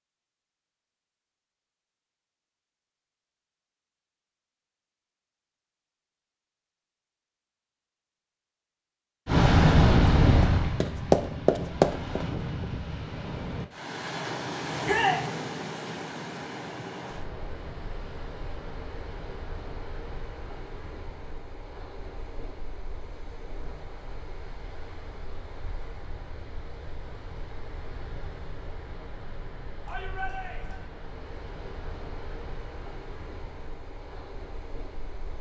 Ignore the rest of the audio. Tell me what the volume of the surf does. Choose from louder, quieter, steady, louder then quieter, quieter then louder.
quieter.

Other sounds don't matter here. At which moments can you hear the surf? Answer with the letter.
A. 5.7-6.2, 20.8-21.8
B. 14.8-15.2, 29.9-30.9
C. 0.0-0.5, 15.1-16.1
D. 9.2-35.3
D.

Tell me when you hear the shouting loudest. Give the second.
15 s.